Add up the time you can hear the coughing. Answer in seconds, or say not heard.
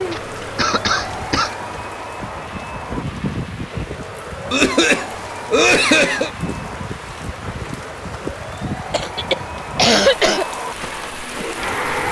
5 s.